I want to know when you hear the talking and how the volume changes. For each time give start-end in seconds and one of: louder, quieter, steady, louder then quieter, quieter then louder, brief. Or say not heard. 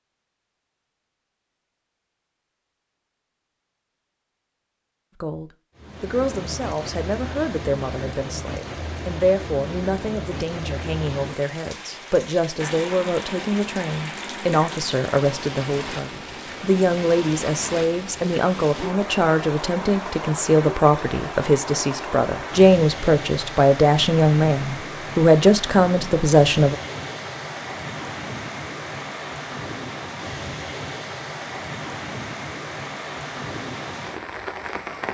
5.2-26.8 louder.